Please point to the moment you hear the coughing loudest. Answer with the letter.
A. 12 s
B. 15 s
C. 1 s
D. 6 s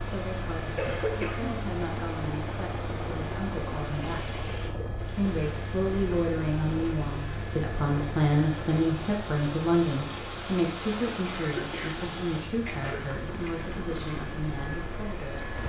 C.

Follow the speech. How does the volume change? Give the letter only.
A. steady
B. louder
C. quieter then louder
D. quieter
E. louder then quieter
E.